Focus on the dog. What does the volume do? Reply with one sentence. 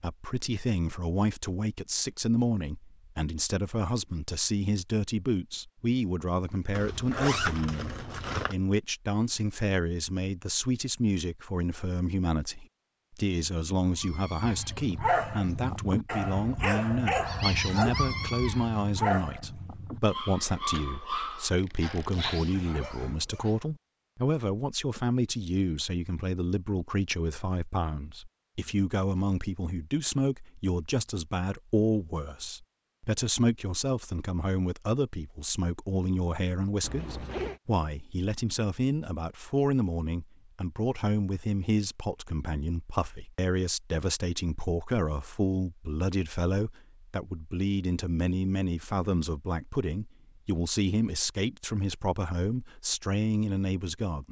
The loudness of the dog goes down.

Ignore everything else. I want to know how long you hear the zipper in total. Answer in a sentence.
You can hear the zipper for 4 seconds altogether.